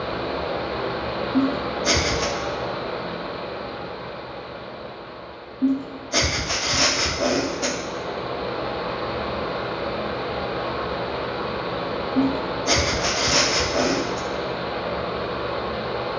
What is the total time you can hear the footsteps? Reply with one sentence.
The footsteps can't be heard in this clip.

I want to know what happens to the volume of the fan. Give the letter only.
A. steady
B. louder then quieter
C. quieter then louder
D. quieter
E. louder
C.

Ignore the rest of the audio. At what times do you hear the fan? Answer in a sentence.
You can hear the fan from 0.0 to 16.1 s.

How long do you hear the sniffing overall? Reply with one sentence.
You can hear the sniffing for 5 seconds altogether.